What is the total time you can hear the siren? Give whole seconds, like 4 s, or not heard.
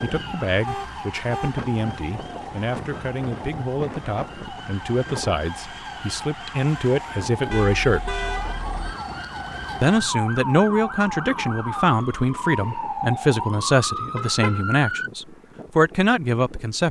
15 s.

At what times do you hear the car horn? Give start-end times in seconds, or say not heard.
0.1-1.6, 7.5-8.7, 14.2-14.6.